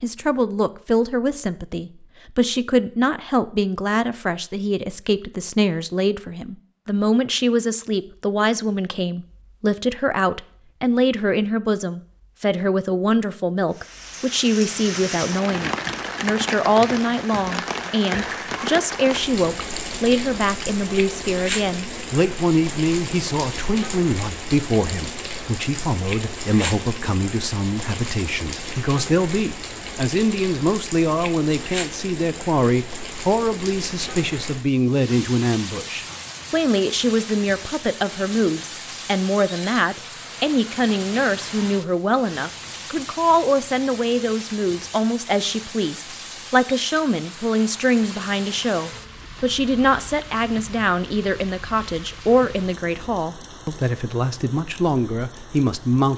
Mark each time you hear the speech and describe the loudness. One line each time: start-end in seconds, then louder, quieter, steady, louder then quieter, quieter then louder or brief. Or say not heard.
0.0-56.1 steady.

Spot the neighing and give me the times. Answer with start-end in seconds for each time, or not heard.
not heard.